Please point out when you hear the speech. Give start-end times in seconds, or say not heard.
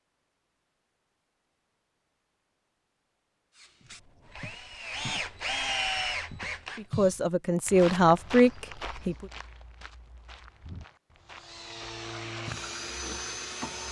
6.8-9.3.